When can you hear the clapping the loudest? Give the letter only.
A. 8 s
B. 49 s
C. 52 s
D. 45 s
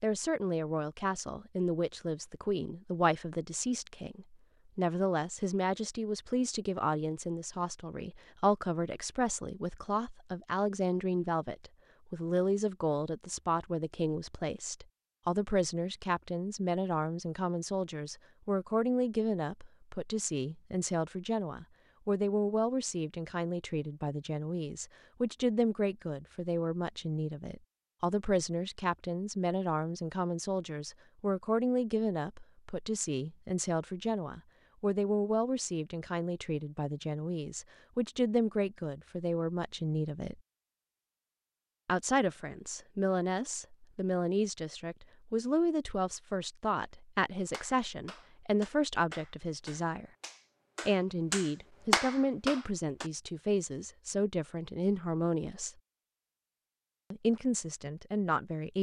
C.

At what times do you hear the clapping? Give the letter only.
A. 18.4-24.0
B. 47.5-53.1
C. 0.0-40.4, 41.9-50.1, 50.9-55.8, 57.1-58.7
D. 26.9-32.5
B.